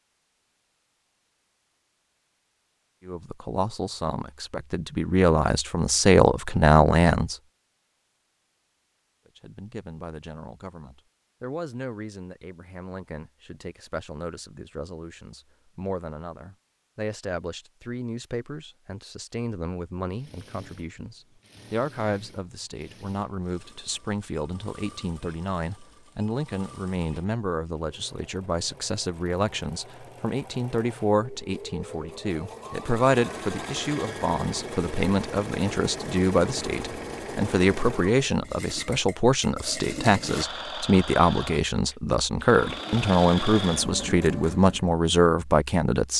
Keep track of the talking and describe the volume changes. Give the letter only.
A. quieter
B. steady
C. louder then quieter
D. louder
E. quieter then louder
E.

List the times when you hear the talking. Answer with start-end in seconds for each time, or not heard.
3.0-7.3, 9.2-46.1.